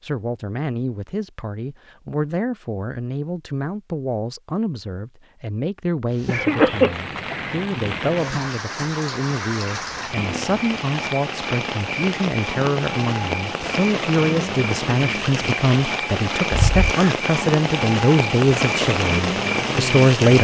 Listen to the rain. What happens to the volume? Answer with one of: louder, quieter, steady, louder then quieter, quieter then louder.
louder.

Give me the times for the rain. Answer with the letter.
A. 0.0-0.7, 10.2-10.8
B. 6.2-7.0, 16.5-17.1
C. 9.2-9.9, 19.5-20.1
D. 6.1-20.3
D.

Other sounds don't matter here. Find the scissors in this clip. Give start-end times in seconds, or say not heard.
not heard.